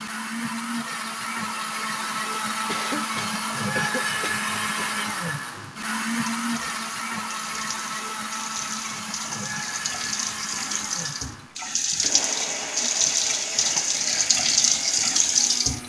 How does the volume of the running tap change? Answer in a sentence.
The loudness of the running tap goes up.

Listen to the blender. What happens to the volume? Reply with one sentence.
The loudness of the blender goes down.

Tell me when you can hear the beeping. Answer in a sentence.
The beeping can't be heard in this clip.